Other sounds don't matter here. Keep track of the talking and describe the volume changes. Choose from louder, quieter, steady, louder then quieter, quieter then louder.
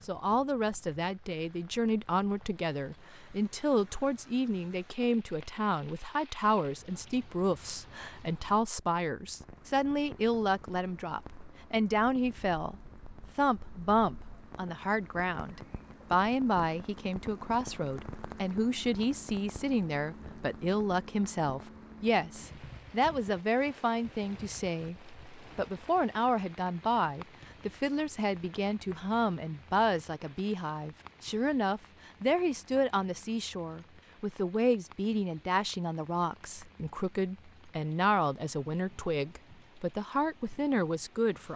steady.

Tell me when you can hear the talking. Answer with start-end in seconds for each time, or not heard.
0.0-12.8, 13.3-41.5.